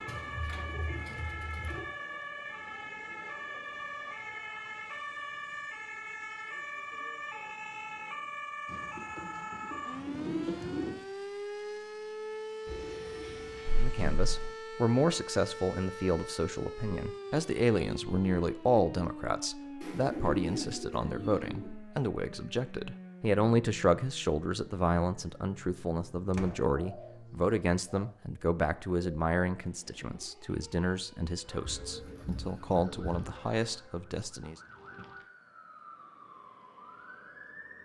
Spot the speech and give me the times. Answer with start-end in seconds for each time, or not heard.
13.8-34.5.